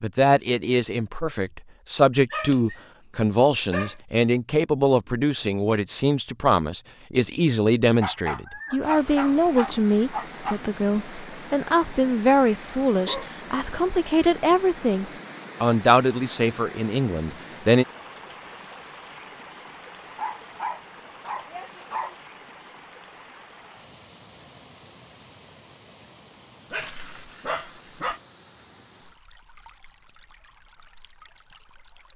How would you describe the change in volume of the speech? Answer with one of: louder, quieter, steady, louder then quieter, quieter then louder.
steady.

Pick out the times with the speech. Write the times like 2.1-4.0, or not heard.
0.0-17.9.